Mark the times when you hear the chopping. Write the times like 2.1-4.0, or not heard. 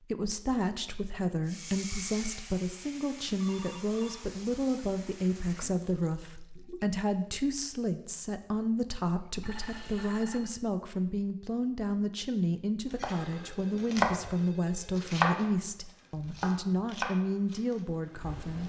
13.0-14.3, 14.9-15.5, 16.1-18.6.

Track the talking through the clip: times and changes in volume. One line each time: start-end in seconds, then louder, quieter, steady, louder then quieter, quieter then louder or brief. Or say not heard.
0.0-18.6 steady.